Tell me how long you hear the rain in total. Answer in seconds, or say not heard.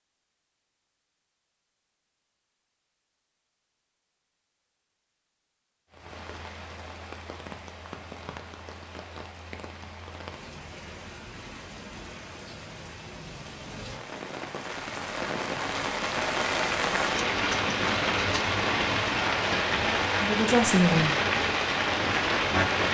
17 s.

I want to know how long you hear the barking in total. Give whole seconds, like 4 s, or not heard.
not heard.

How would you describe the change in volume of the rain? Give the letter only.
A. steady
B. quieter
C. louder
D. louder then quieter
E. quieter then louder
C.